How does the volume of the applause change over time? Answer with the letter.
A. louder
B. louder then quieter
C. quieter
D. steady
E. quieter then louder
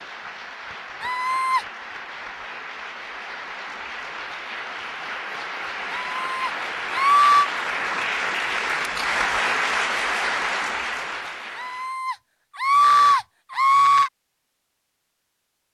A.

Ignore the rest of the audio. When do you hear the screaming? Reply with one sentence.
You can hear the screaming from 1.0 to 1.6 s, from 6.1 to 7.5 s and from 11.6 to 14.1 s.